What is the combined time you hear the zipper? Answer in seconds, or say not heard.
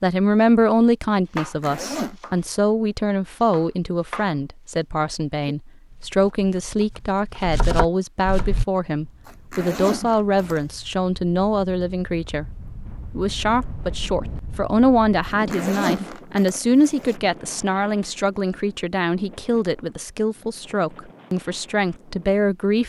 4 s.